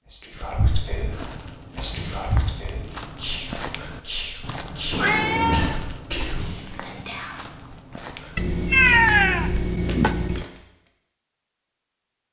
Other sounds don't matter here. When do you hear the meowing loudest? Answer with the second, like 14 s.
9 s.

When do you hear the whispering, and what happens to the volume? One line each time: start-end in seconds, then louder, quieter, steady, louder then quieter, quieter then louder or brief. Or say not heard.
0.1-7.3 steady.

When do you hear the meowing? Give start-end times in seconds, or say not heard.
0.7-1.1, 4.9-5.8, 8.3-10.4.